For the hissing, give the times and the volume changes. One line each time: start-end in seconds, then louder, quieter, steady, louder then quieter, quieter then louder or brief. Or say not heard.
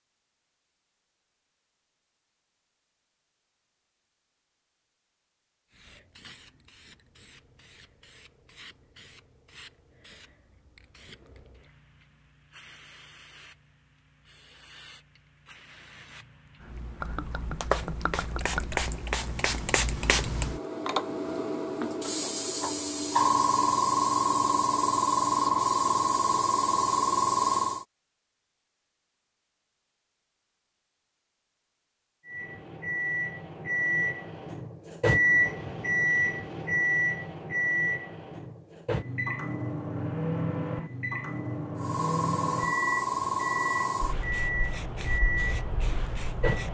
5.7-27.9 louder
41.8-46.6 quieter.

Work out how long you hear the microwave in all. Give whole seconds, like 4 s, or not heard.
14 s.